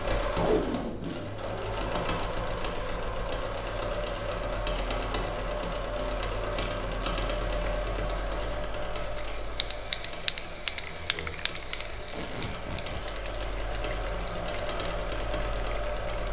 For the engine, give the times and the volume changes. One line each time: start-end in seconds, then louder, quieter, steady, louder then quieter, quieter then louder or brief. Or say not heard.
0.0-16.2 quieter then louder.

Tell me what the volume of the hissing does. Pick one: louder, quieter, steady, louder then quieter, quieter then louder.
louder then quieter.